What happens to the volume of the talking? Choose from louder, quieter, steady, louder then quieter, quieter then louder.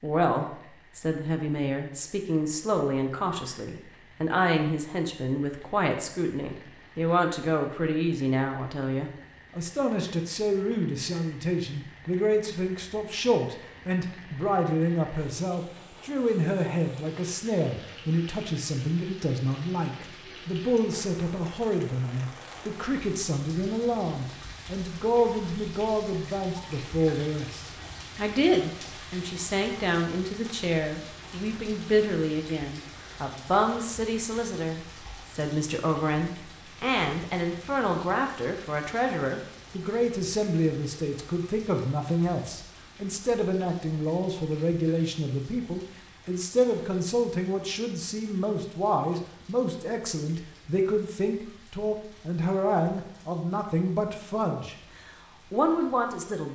steady.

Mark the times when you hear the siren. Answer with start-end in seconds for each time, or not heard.
not heard.